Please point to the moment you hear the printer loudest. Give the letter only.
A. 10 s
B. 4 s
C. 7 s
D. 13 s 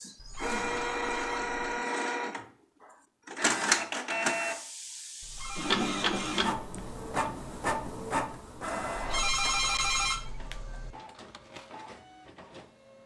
B.